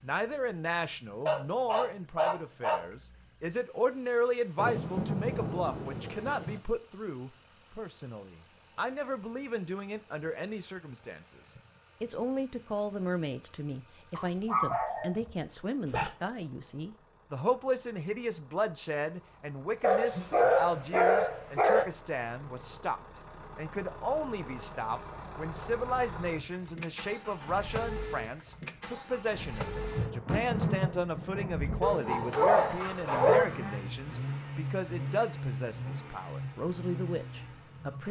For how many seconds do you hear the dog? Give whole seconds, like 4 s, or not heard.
7 s.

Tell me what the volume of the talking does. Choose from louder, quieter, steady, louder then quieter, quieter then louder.
steady.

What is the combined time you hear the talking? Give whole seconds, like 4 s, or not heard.
37 s.